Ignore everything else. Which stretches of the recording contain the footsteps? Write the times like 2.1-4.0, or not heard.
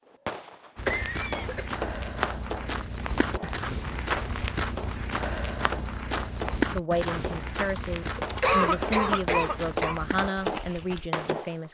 0.8-11.1.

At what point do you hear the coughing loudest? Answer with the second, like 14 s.
9 s.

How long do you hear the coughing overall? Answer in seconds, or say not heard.
3 s.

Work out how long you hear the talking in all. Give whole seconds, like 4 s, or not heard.
5 s.